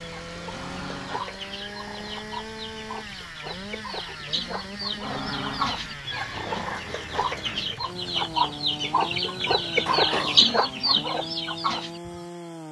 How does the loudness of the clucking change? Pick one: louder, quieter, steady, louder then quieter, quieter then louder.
louder.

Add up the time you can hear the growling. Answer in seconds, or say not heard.
4 s.